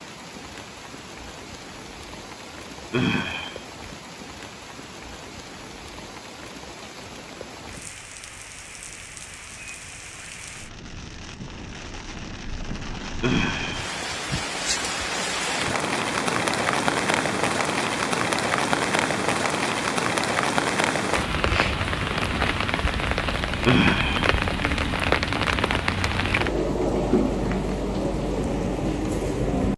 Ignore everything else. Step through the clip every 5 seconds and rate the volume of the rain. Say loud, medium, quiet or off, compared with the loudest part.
quiet, quiet, medium, loud, loud, loud.